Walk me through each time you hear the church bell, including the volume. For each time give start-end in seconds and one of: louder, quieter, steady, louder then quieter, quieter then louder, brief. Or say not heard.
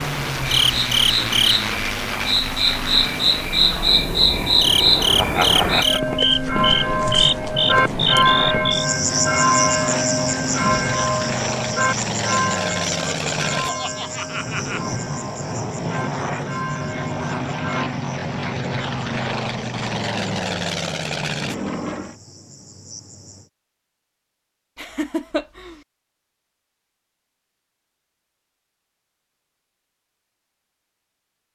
5.8-17.9 quieter.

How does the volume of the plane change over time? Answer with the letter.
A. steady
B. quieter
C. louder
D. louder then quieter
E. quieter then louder
A.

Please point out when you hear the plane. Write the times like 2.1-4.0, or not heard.
0.0-22.1.